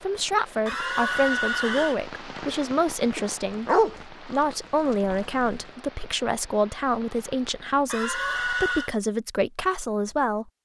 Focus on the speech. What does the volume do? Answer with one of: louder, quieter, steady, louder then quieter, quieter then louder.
steady.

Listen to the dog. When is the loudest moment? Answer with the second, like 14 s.
4 s.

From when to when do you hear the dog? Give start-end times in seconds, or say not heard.
3.1-5.6.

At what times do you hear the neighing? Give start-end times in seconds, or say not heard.
0.7-2.0, 7.8-8.9.